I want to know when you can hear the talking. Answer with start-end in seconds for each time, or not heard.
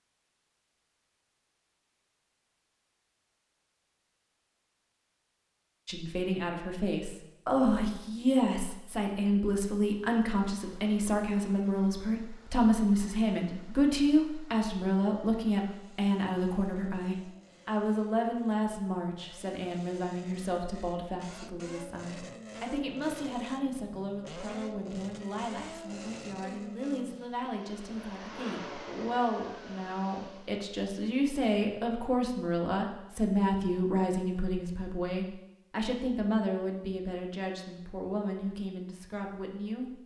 5.8-40.0.